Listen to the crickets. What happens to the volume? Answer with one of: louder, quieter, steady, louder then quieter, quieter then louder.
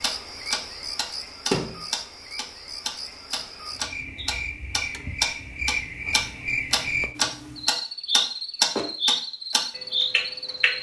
louder.